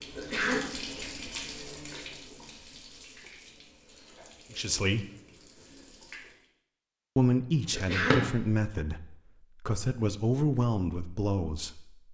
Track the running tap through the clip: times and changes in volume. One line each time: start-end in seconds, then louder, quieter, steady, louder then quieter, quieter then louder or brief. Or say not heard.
0.0-6.5 quieter.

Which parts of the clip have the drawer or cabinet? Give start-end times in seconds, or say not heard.
7.5-8.3.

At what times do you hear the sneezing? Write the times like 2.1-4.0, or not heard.
0.1-0.7, 7.7-8.2.